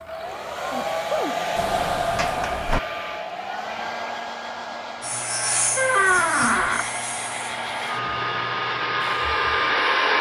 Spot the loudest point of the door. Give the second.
6 s.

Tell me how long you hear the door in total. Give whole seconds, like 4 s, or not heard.
2 s.